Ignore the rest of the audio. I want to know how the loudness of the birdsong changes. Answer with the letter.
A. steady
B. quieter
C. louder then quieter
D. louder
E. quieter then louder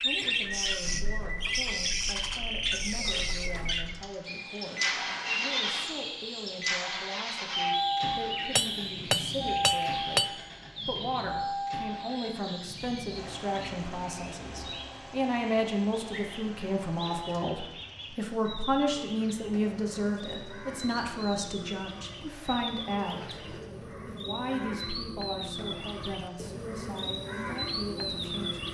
E.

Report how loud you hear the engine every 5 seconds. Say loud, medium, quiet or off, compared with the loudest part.
medium, loud, medium, quiet, quiet, quiet.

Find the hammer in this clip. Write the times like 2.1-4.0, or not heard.
8.6-10.3.